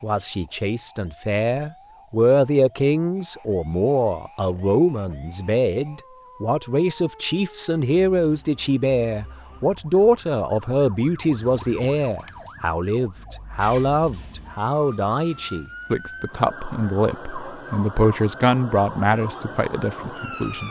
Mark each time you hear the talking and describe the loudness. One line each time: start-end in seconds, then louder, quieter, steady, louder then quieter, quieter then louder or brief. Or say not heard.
0.0-20.6 steady.